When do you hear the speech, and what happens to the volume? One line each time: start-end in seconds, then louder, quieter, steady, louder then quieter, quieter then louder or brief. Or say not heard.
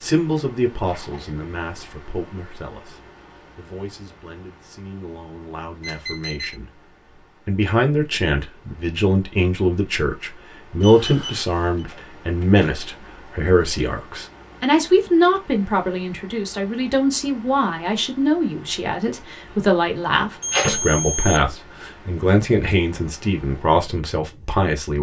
0.0-24.9 louder.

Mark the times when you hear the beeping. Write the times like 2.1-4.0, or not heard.
5.8-6.5, 10.8-11.8, 20.4-21.4.